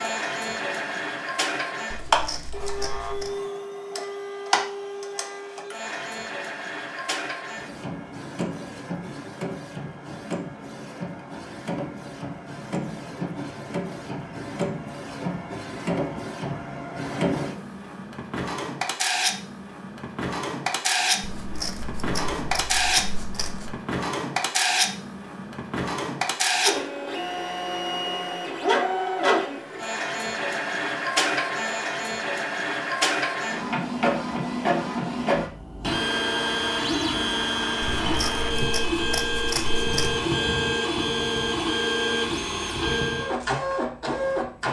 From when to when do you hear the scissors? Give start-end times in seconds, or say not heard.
1.9-3.3, 21.2-23.8, 38.0-40.2.